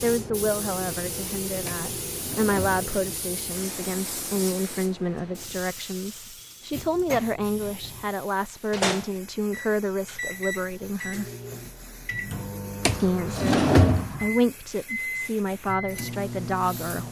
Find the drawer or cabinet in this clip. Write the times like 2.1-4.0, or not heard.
1.6-2.9, 6.7-8.2, 12.8-14.2.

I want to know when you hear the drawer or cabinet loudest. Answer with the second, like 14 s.
14 s.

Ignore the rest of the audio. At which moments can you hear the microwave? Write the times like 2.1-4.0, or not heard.
8.7-17.0.